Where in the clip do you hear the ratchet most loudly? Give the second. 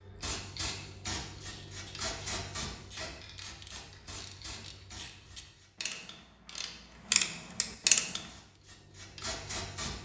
8 s.